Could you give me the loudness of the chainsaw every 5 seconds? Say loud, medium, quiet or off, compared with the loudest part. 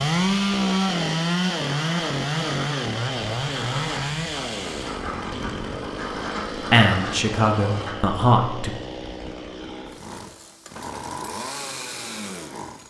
loud, medium, medium.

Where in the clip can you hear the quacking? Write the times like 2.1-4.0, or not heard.
1.4-8.0.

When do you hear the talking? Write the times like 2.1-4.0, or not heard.
6.7-8.7.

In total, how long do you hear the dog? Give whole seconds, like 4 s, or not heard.
not heard.